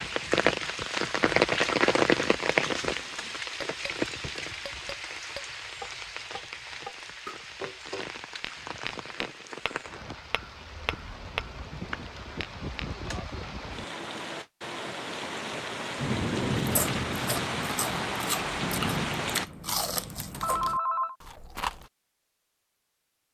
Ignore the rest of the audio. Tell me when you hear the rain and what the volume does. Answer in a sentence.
The rain can be heard from 0.0 to 19.4 s, getting quieter then louder.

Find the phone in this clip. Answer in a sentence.
You can hear the phone from 20.4 to 21.1 s.